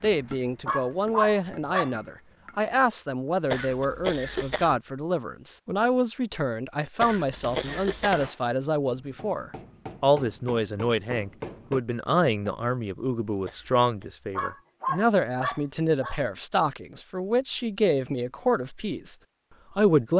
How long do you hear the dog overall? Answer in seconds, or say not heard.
3 s.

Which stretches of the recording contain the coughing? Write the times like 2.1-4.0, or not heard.
3.5-4.8, 7.0-8.3, 13.4-13.8.